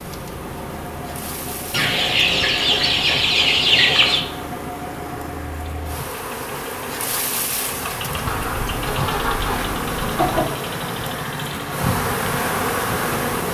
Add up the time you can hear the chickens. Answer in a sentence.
The chickens can be heard for 5 seconds in total.